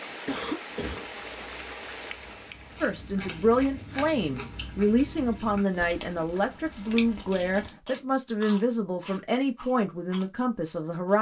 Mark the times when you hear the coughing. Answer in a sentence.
You can hear the coughing from 0.2 to 1.1 s.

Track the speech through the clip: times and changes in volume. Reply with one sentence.
You can hear the speech from 2.8 to 11.1 s, at a steady volume.